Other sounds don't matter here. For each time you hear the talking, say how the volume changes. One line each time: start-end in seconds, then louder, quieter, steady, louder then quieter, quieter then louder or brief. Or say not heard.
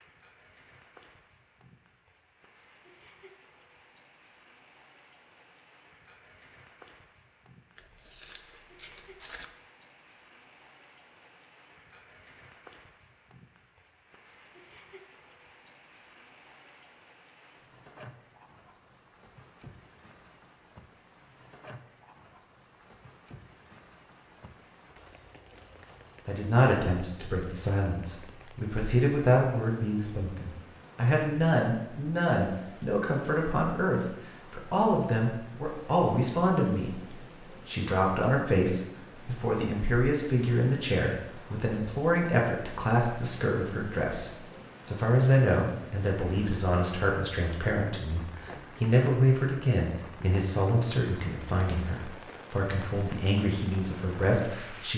26.2-54.9 steady.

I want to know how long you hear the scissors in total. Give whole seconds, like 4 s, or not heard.
2 s.